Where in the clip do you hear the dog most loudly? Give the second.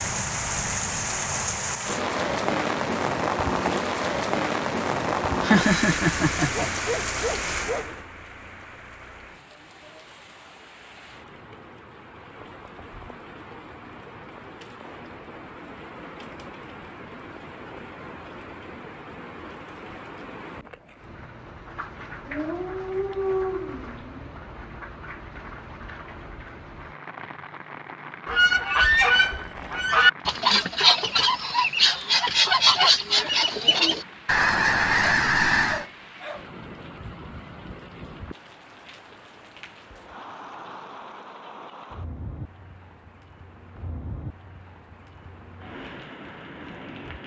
23 s.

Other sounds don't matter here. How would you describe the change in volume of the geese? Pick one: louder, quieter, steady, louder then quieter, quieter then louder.
steady.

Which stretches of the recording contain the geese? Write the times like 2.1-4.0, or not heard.
28.2-35.9.